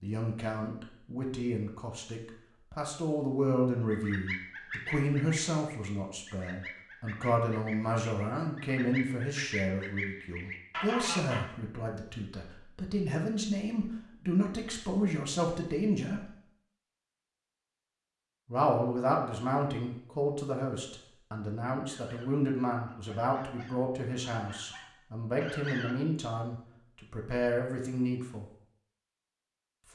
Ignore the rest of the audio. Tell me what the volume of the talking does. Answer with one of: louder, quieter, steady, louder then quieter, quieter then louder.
steady.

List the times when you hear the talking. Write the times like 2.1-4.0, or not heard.
0.0-16.4, 18.4-28.4.